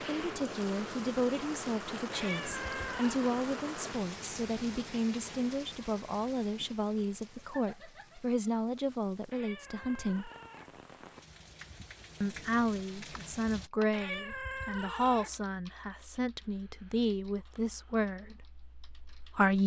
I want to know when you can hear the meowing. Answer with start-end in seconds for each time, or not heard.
2.1-3.2, 9.3-10.8, 13.9-15.4.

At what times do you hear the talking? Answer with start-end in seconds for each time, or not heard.
0.1-10.3, 12.2-19.6.